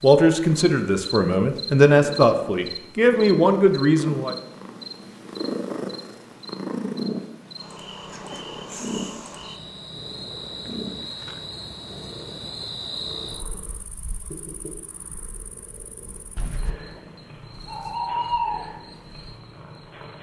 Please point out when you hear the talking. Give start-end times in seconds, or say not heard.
0.0-4.3.